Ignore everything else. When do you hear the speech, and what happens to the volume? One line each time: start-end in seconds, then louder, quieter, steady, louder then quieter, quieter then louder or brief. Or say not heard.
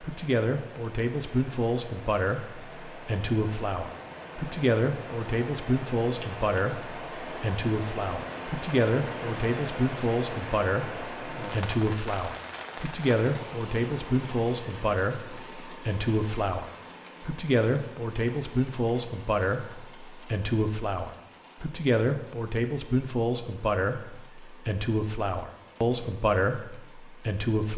0.0-27.7 steady.